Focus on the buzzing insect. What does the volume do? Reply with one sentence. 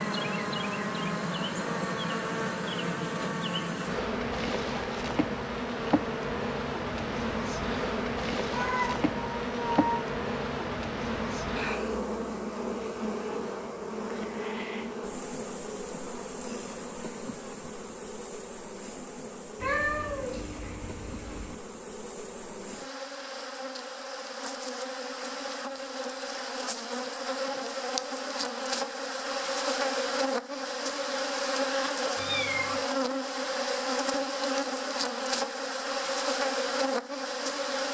The volume of the buzzing insect goes down, then up.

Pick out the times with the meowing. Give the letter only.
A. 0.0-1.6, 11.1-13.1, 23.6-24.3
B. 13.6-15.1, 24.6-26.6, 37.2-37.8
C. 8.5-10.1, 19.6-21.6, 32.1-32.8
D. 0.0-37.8
C.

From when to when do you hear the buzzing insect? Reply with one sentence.
You can hear the buzzing insect from 0.0 to 37.8 s.